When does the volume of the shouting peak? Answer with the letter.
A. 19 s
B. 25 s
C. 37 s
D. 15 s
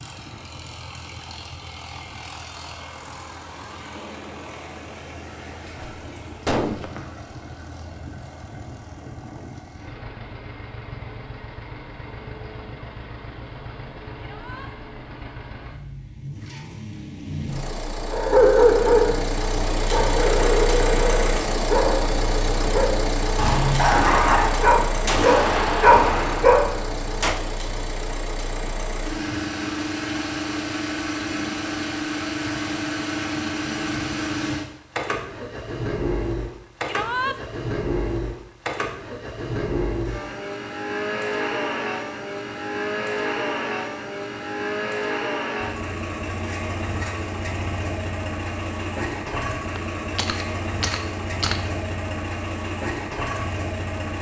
C.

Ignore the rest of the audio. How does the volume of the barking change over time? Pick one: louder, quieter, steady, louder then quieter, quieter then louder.
quieter then louder.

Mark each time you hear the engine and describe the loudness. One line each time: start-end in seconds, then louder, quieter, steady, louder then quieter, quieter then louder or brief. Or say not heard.
0.0-54.1 louder.